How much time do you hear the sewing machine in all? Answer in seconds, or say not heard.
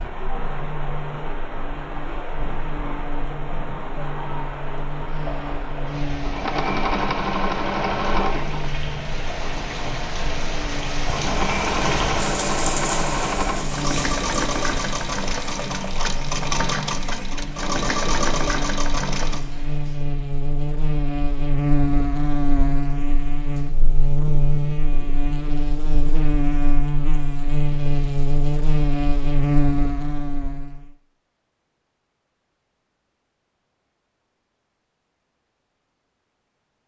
14 s.